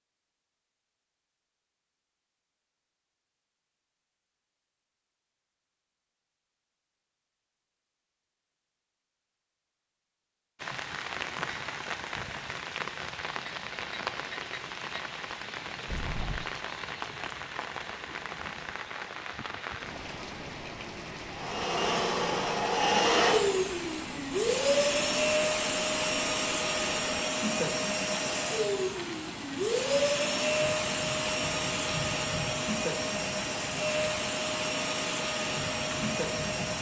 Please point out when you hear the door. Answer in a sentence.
The door can be heard from 15.8 to 16.5 s.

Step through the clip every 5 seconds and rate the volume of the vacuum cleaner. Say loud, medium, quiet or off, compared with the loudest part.
off, off, off, off, loud, loud, loud, medium.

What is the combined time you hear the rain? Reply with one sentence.
You can hear the rain for 26 seconds altogether.